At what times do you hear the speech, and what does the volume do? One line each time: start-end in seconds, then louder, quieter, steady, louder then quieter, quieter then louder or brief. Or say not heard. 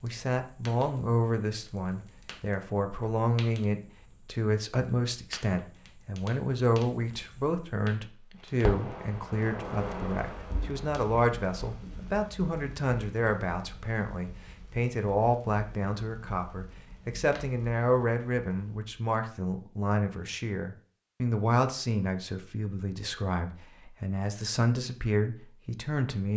0.0-26.3 steady.